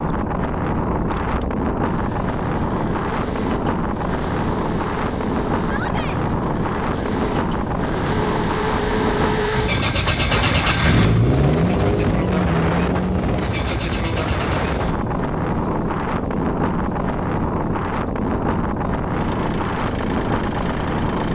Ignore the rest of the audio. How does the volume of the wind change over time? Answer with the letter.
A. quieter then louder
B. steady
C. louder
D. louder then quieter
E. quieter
B.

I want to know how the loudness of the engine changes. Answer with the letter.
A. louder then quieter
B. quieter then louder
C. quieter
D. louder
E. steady
A.